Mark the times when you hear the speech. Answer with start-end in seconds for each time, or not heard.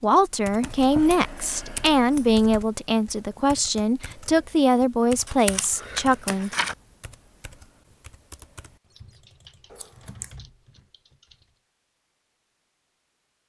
0.0-6.5.